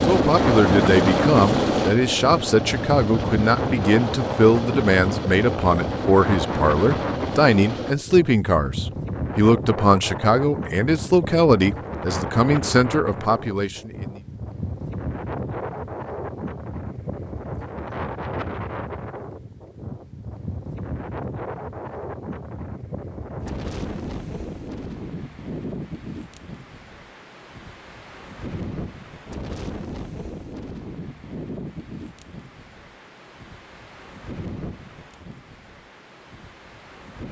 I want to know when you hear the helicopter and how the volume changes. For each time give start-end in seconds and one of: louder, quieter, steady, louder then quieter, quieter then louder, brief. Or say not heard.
0.0-8.0 quieter.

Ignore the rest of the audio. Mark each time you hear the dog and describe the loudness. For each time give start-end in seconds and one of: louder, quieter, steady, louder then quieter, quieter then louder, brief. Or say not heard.
not heard.